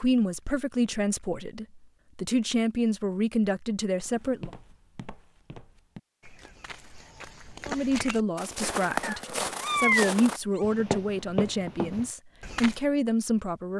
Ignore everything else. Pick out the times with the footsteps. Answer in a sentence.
You can hear the footsteps from 4.0 to 12.8 s.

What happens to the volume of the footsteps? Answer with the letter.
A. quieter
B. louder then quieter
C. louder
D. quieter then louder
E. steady
C.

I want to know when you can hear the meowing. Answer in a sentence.
You can hear the meowing from 9.0 to 10.6 s.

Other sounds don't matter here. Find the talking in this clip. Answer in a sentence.
The talking can be heard from 0.0 to 4.5 s and from 7.7 to 13.7 s.